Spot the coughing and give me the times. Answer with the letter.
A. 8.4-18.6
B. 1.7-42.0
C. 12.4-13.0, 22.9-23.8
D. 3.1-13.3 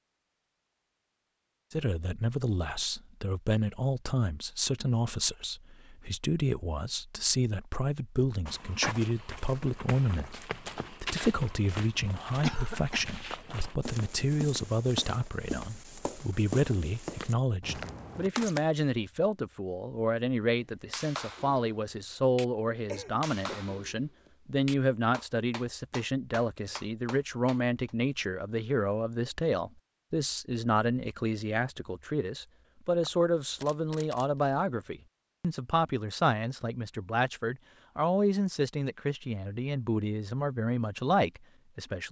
C.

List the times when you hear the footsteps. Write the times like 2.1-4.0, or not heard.
8.4-18.6.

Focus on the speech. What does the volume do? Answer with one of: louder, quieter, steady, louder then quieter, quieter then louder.
steady.